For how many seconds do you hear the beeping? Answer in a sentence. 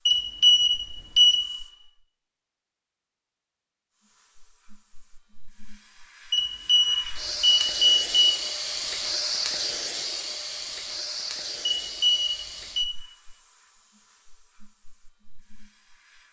The beeping can be heard for 5 seconds in total.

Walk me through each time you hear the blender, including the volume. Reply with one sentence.
The blender can't be heard in this clip.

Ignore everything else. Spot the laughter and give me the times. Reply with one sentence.
You can't hear the laughter here.